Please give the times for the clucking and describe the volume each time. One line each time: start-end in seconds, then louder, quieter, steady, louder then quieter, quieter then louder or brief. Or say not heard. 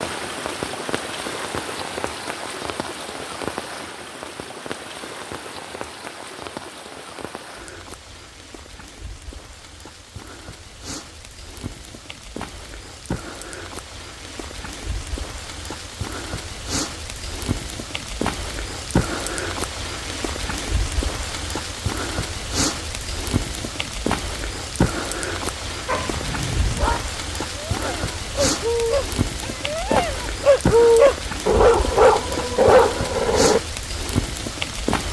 not heard.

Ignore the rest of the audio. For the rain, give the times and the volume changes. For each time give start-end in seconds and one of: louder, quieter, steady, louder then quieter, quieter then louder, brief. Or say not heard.
0.0-35.0 quieter then louder.